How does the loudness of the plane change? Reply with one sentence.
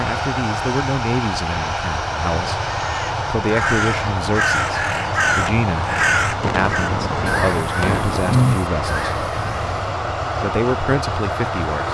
The loudness of the plane stays about the same.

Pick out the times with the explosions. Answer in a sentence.
The explosions can be heard from 6.4 to 8.4 s.